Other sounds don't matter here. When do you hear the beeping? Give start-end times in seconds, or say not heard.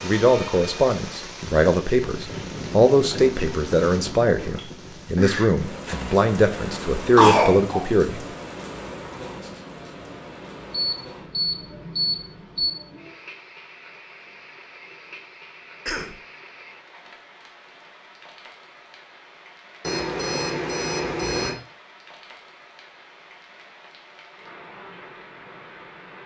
3.0-4.6, 10.7-12.7, 19.8-21.6.